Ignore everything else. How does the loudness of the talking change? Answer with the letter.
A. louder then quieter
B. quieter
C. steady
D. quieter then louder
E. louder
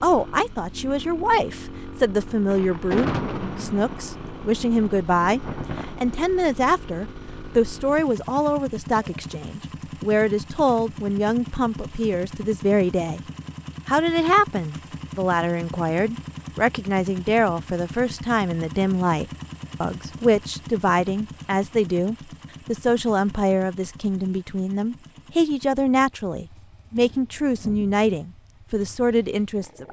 C.